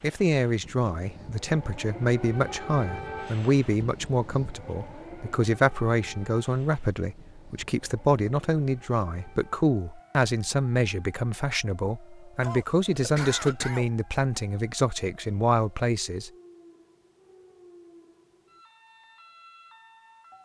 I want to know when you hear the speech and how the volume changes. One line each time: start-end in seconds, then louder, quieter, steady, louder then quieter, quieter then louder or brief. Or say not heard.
0.0-16.3 steady.